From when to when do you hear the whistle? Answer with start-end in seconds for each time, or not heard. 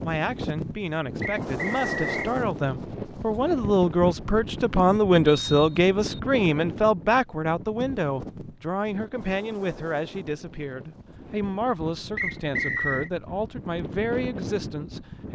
1.2-2.3, 5.2-6.2, 12.2-13.1.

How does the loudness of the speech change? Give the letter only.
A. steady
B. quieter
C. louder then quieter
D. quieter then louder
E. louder
C.